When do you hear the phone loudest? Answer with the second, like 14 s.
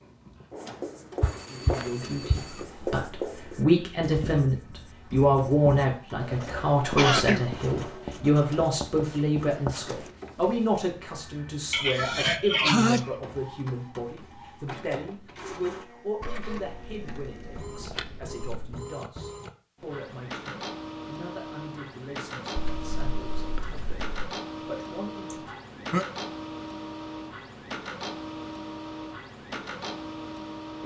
2 s.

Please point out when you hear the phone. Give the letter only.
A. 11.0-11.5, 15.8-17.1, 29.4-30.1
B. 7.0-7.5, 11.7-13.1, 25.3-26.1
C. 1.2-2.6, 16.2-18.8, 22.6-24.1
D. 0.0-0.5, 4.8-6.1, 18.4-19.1
C.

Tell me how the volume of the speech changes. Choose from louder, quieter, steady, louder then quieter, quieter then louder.
quieter.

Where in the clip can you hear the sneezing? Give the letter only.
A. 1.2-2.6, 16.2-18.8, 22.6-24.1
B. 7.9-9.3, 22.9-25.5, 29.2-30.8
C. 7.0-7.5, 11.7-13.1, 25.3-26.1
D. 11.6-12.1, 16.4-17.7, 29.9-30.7
C.